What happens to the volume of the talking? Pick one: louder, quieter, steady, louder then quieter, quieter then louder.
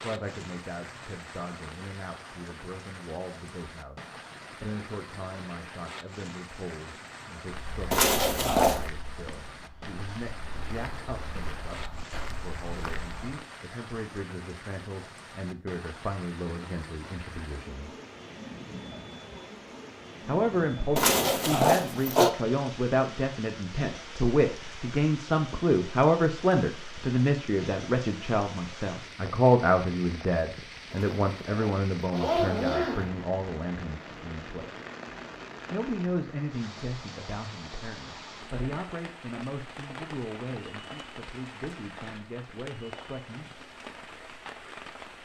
louder then quieter.